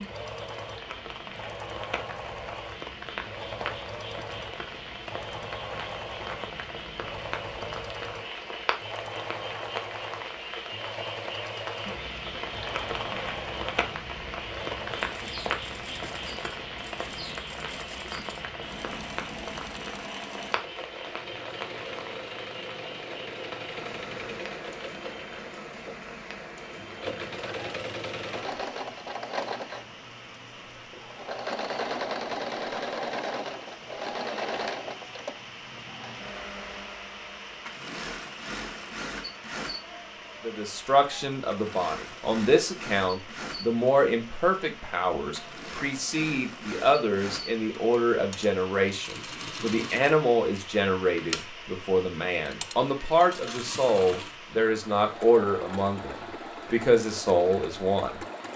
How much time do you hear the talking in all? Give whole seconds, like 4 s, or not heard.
18 s.